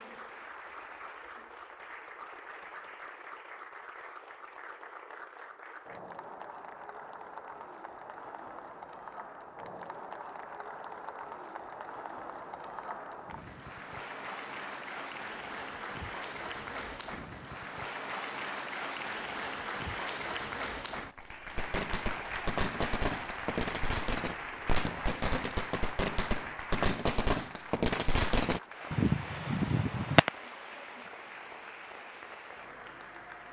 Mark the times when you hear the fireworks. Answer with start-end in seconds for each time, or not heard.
21.5-30.3.